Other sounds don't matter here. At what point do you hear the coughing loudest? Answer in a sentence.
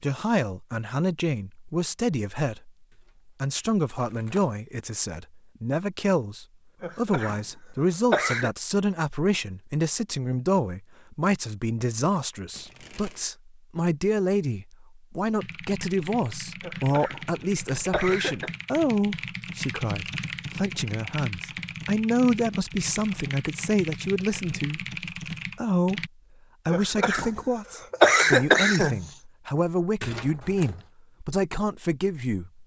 The loudest moment of the coughing is at 28 seconds.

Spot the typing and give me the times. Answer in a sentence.
You can hear the typing from 15.4 to 26.1 s.